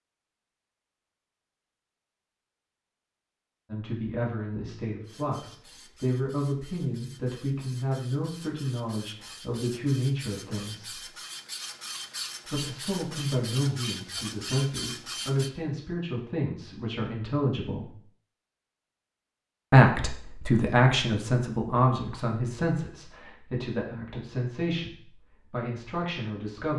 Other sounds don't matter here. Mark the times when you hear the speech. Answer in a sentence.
You can hear the speech from 3.7 to 11.1 s, from 12.4 to 17.9 s and from 19.7 to 26.7 s.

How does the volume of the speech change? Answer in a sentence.
The loudness of the speech goes up, then down.